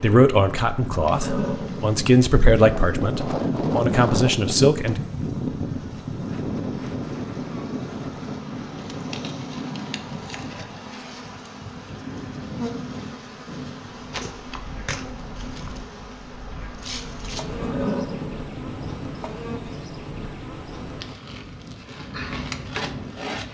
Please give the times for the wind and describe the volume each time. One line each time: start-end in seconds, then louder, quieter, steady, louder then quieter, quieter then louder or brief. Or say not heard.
0.0-23.4 quieter.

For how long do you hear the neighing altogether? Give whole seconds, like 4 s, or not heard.
2 s.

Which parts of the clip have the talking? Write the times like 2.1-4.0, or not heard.
0.0-5.0.